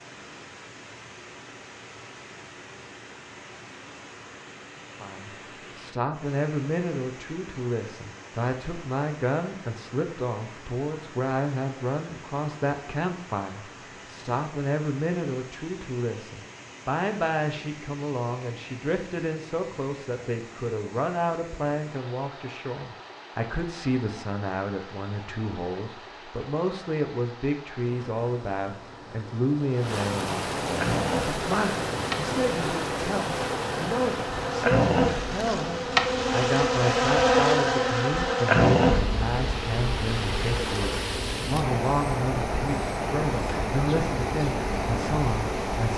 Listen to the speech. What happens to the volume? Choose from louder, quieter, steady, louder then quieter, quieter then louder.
steady.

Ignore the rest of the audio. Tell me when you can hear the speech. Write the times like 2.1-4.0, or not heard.
5.0-45.9.